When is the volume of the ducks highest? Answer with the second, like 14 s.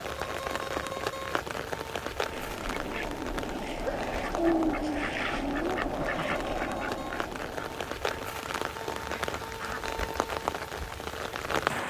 5 s.